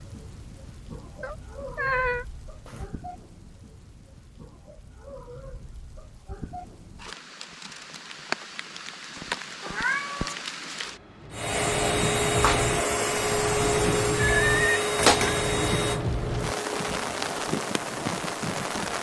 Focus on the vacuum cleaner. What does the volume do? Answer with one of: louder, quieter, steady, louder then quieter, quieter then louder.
quieter.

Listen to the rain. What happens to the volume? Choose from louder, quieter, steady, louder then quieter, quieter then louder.
louder.